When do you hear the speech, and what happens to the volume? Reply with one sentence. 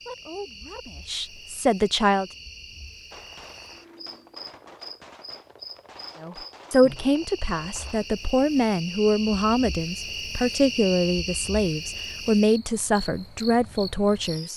The speech can be heard briefly from 0.1 to 2.3 s; and from 6.2 to 14.5 s, at a steady volume.